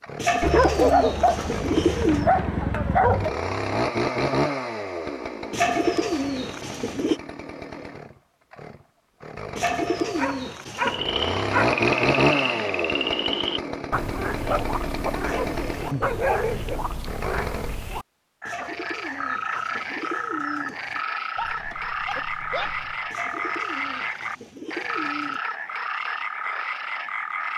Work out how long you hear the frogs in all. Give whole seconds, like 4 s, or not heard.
17 s.